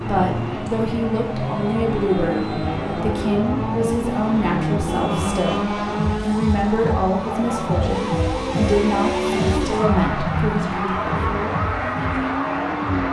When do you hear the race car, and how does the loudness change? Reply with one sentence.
The race car can be heard from 0.0 to 13.0 s, at a steady volume.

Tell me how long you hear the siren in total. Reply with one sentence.
The siren can be heard for 13 seconds in total.